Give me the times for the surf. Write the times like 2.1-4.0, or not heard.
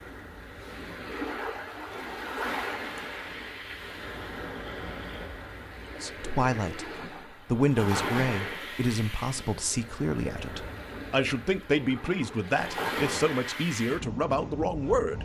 0.0-15.2.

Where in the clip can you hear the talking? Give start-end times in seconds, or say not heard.
6.0-15.2.